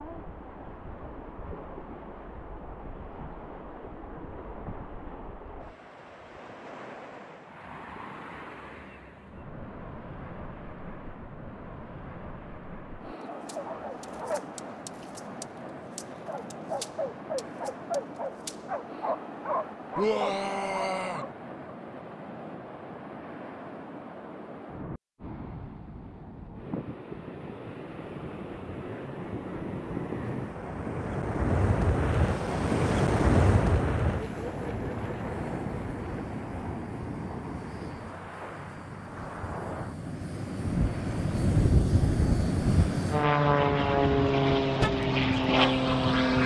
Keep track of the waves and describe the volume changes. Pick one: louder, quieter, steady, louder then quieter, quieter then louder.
louder then quieter.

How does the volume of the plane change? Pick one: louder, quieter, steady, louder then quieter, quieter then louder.
louder.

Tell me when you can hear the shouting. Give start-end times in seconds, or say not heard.
19.9-21.2.